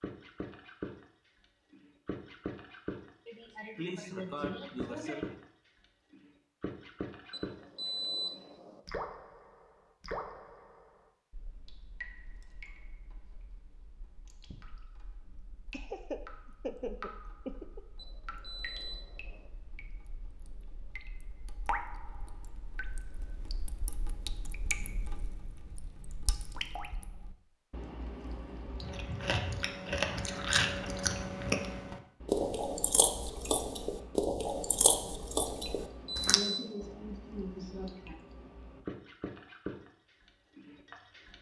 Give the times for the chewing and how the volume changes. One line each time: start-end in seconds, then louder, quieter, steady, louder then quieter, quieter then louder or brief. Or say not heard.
28.8-36.4 steady.